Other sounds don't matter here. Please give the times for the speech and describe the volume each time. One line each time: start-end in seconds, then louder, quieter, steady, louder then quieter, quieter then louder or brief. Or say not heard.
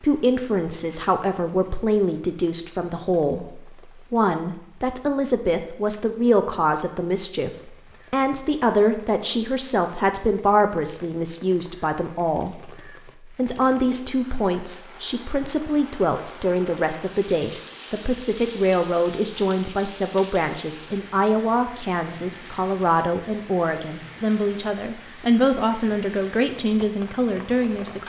0.0-12.7 steady
13.3-28.0 steady.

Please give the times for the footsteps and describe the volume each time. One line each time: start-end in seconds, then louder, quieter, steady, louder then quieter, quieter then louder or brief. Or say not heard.
not heard.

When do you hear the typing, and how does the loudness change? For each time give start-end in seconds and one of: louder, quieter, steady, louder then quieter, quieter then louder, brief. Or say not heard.
not heard.